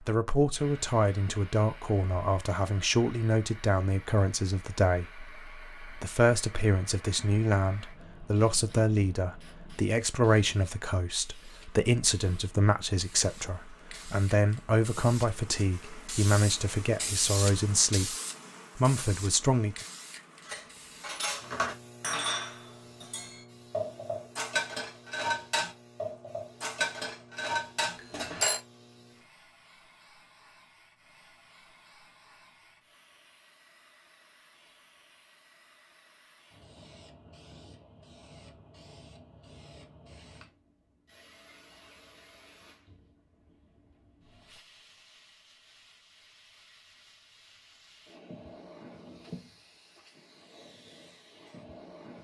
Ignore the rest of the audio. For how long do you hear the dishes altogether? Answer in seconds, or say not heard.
8 s.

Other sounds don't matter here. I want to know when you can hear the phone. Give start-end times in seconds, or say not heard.
27.9-28.6.